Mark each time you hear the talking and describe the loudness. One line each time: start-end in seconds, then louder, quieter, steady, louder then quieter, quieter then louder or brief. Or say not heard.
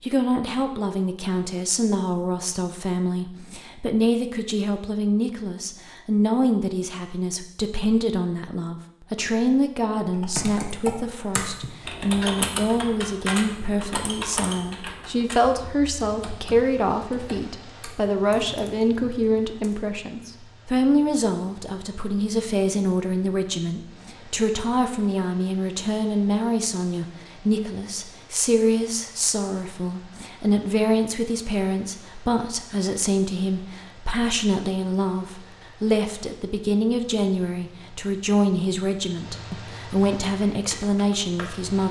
0.0-41.8 steady.